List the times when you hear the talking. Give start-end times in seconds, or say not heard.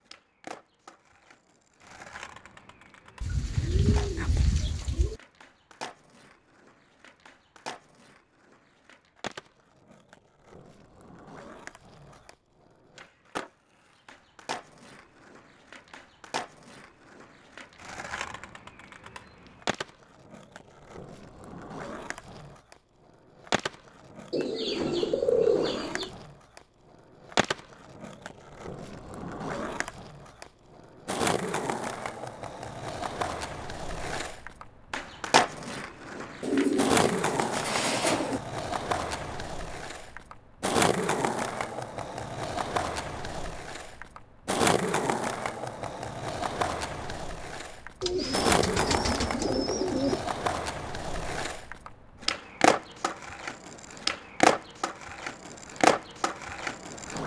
not heard.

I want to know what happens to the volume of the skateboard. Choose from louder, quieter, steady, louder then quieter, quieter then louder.
louder.